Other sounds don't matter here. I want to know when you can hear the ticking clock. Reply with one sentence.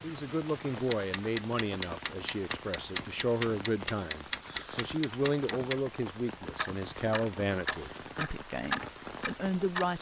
The ticking clock can be heard from 0.0 to 5.8 s and from 6.4 to 9.9 s.